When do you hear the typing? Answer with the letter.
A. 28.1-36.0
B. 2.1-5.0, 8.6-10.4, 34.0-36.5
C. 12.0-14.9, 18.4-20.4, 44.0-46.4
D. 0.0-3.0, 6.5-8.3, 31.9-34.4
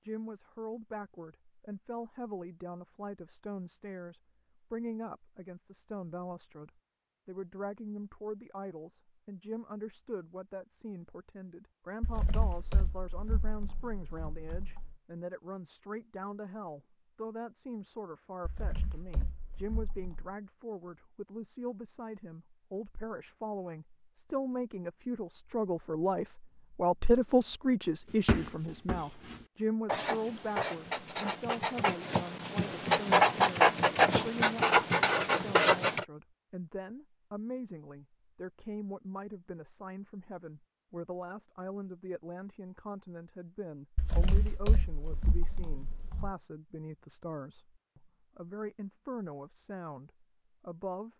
C.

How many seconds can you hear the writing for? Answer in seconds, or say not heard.
8 s.